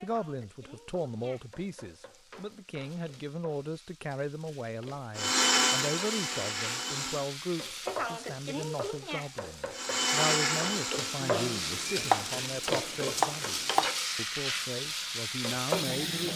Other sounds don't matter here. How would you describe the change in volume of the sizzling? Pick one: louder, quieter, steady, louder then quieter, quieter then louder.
louder.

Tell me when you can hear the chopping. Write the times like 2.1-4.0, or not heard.
11.2-13.9.